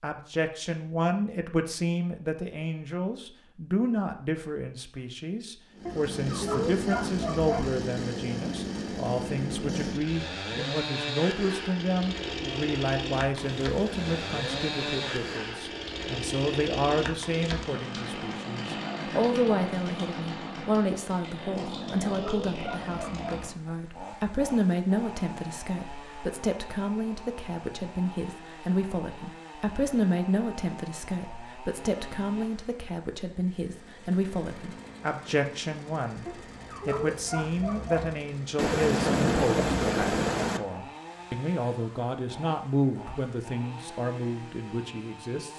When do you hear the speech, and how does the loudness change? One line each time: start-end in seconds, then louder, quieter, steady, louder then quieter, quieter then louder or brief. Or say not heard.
0.0-45.5 steady.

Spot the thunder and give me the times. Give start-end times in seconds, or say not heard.
13.3-15.4, 38.5-40.6.